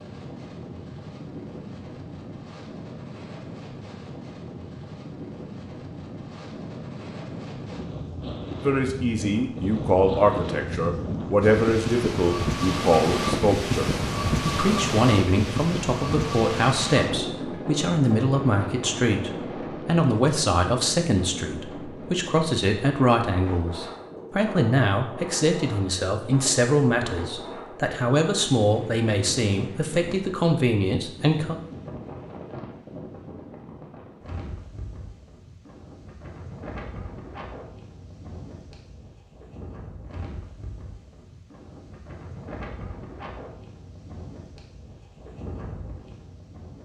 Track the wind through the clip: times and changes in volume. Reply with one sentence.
The wind can be heard from 0.0 to 46.8 s, getting louder then quieter.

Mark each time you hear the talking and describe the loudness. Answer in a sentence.
You can hear the talking from 8.6 to 31.6 s, at a steady volume.